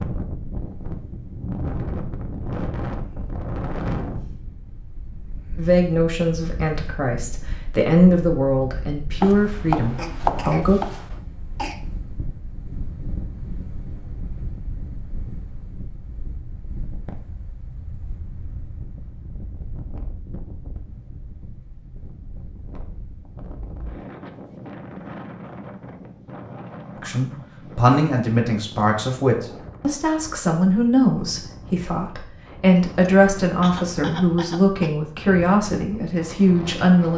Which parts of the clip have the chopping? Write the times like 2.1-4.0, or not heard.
9.2-11.2.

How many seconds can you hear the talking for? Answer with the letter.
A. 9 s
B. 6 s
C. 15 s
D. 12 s
C.